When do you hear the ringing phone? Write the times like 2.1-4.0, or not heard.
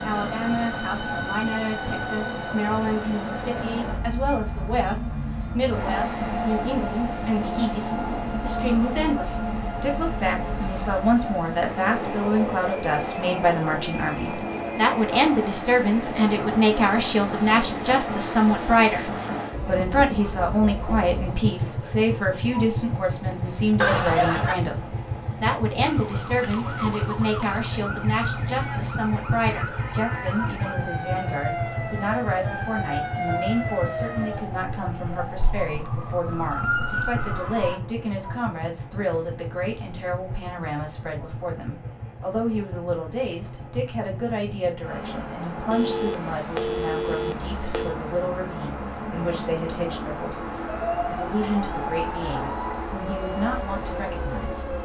23.8-24.6, 45.7-48.0.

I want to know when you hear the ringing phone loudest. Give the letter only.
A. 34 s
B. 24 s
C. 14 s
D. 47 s
B.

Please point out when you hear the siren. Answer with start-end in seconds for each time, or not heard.
25.8-37.8, 50.6-54.8.